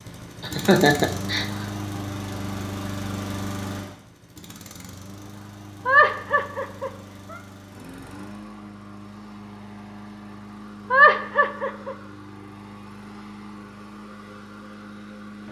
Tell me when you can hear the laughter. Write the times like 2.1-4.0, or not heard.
0.4-1.4, 5.8-7.4, 10.9-11.9.